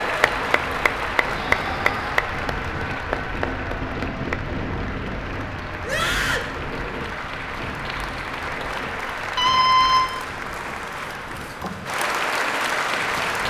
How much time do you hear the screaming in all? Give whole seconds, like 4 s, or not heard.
2 s.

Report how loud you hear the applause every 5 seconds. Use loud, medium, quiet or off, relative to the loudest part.
loud, medium, loud.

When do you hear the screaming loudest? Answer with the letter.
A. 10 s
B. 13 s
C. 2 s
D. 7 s
A.